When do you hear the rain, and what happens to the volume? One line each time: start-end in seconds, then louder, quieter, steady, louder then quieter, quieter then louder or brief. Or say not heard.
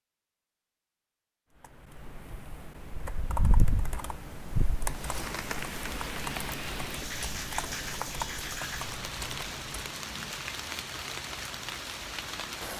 4.8-12.7 steady.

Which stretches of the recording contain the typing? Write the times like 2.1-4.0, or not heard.
1.6-9.8.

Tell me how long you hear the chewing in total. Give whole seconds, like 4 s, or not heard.
not heard.